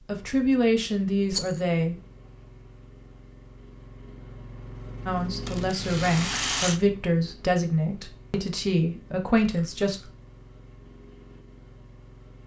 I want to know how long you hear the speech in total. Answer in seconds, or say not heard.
7 s.